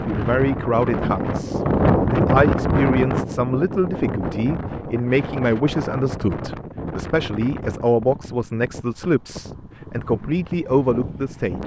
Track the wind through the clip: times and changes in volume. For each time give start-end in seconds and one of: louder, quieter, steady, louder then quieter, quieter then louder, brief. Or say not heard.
0.0-11.6 quieter.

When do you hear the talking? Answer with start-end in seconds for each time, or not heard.
0.0-11.6.